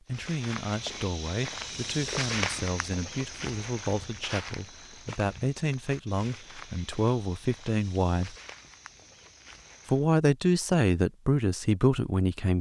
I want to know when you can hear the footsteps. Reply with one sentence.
The footsteps can be heard from 0.1 to 10.1 s.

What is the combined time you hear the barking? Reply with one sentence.
The barking can't be heard in this clip.